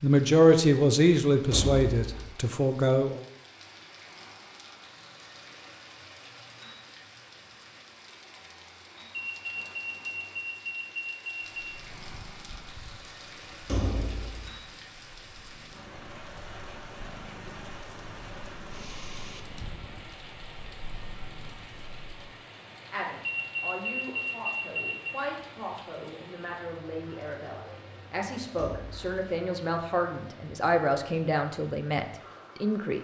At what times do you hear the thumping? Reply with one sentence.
You can hear the thumping from 1.5 to 2.3 s, from 13.7 to 14.5 s and from 28.6 to 29.1 s.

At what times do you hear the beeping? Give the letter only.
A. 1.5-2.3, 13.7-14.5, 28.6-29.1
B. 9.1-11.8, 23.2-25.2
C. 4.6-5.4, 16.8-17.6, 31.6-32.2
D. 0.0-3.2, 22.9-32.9
B.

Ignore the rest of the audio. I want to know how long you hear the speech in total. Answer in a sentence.
You can hear the speech for 13 seconds altogether.